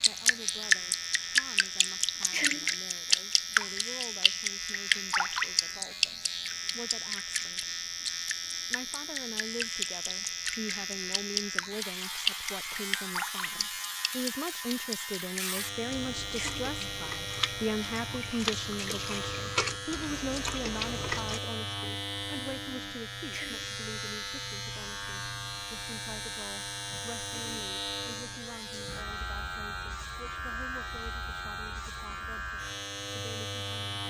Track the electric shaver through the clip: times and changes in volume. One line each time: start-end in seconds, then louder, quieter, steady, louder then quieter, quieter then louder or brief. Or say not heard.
0.0-34.0 steady.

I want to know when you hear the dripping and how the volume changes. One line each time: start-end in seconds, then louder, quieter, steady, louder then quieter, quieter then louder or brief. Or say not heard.
0.0-21.4 quieter.